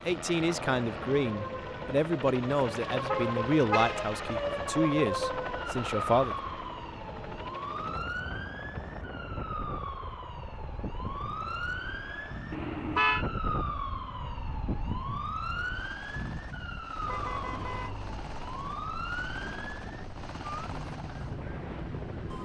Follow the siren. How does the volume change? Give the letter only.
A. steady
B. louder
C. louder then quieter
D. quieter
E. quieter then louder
D.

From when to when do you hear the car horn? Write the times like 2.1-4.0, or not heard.
3.0-4.4, 12.5-13.2, 17.1-17.9.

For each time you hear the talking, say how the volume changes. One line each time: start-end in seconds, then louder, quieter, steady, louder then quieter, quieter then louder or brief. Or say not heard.
0.0-6.3 steady.